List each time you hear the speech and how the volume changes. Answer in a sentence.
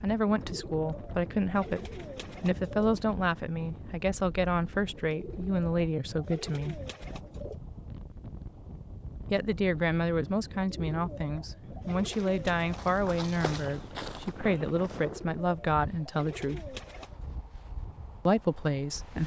You can hear the speech from 0.0 to 6.8 s, at a steady volume; from 9.3 to 16.8 s, at a steady volume; and briefly from 18.2 to 19.2 s.